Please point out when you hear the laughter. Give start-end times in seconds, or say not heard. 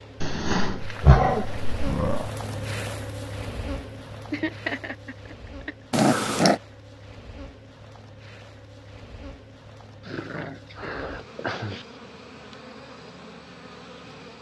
4.3-5.8.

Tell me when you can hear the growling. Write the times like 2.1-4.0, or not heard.
0.2-2.3, 5.9-6.6, 10.1-11.8.